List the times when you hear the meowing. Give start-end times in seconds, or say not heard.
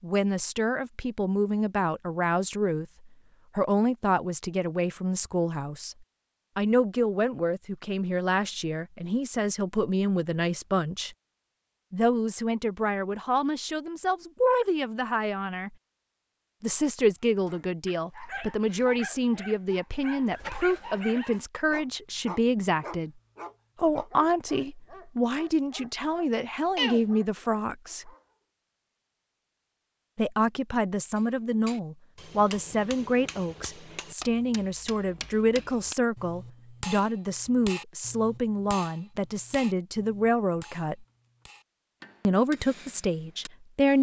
26.3-27.1.